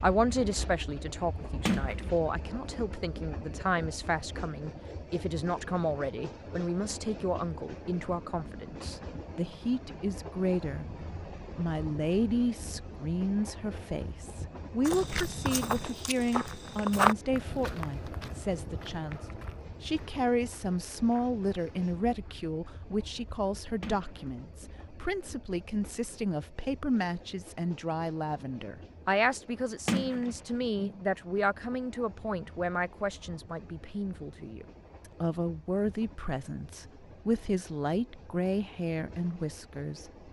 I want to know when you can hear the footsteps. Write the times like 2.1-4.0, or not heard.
14.8-22.4.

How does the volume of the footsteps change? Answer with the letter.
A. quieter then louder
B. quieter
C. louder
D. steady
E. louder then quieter
E.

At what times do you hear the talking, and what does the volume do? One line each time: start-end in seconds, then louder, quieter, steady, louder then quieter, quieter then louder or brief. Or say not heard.
0.0-10.8 steady
11.6-40.1 steady.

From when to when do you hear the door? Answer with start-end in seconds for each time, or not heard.
1.6-2.1, 23.8-24.3, 29.9-31.1.